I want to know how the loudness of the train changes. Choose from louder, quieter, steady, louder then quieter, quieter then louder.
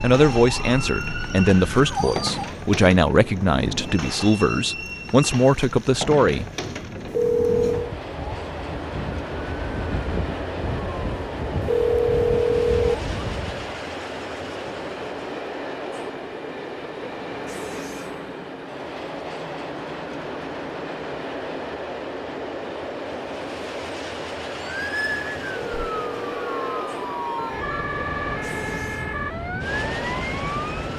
steady.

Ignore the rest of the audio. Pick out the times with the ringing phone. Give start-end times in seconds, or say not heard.
7.1-8.0, 11.6-12.9, 25.5-27.7.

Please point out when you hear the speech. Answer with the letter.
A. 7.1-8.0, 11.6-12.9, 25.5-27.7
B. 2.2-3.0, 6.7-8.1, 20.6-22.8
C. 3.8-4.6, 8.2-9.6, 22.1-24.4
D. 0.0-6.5
D.